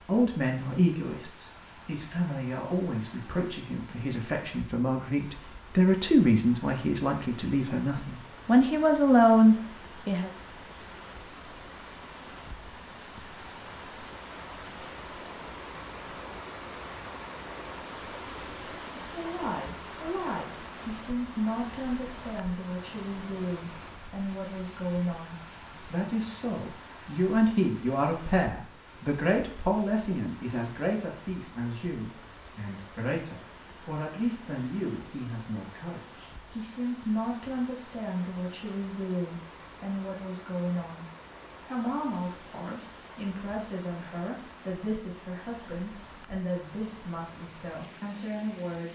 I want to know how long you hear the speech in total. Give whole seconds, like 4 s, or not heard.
40 s.